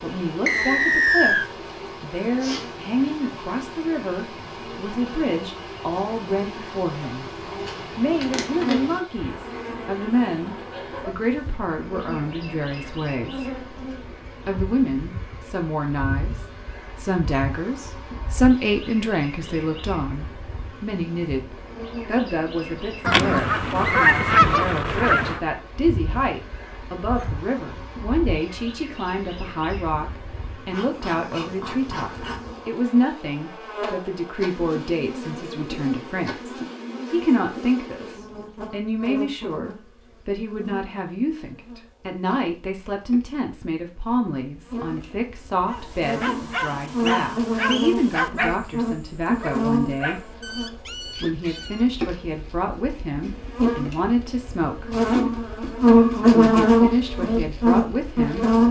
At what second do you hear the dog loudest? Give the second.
48 s.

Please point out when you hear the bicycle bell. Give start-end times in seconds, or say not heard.
not heard.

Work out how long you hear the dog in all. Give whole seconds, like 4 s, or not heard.
6 s.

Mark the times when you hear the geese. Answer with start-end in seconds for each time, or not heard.
23.0-25.4.